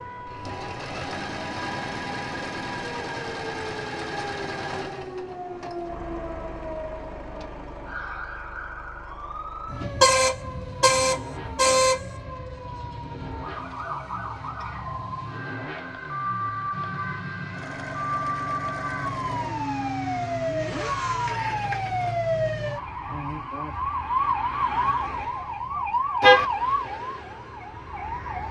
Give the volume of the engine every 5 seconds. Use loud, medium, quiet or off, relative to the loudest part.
loud, medium, medium, loud, loud, off.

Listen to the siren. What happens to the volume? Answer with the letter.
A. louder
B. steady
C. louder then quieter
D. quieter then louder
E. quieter
A.